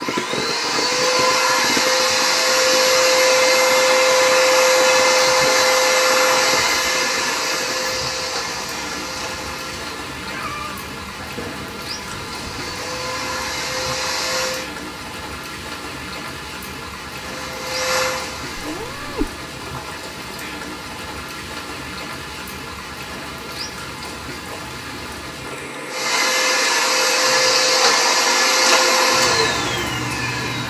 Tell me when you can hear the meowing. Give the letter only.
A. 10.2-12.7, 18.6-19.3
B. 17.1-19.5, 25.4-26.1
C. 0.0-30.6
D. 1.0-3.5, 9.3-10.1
A.